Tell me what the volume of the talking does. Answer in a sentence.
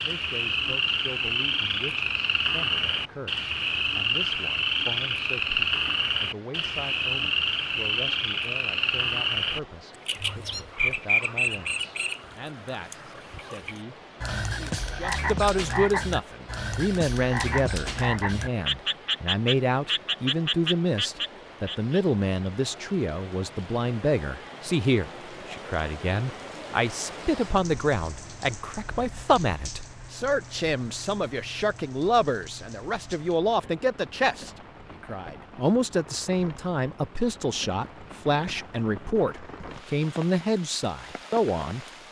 The loudness of the talking goes up.